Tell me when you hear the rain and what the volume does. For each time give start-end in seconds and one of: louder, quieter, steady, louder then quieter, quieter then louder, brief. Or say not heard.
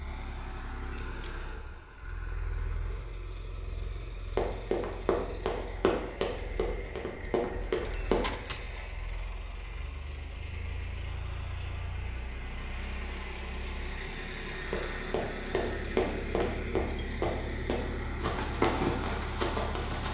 not heard.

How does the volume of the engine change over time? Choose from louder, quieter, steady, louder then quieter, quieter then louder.
louder.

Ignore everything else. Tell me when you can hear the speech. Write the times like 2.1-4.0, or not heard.
not heard.